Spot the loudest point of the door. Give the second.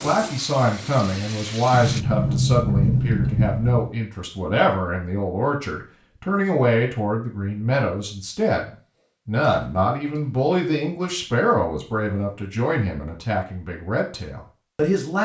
3 s.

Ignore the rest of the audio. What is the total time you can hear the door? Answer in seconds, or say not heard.
3 s.